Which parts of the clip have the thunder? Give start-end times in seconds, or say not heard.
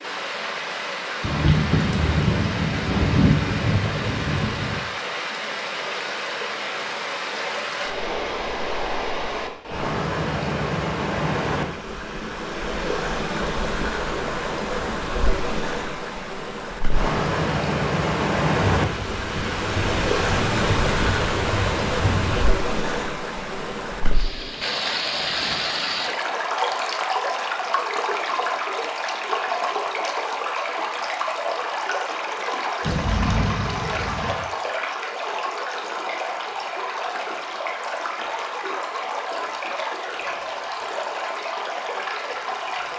1.2-4.8, 18.8-22.4, 32.8-34.4.